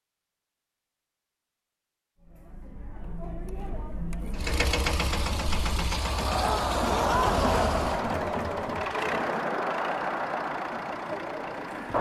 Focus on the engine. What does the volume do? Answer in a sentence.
The loudness of the engine goes down.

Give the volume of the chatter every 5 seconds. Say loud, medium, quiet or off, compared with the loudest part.
quiet, loud, loud.